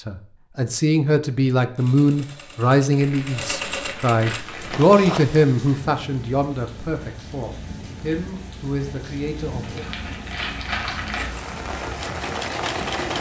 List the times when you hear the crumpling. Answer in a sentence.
The crumpling can be heard from 3.0 to 4.8 s and from 9.6 to 11.3 s.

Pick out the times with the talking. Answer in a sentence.
You can hear the talking from 0.1 to 9.8 s.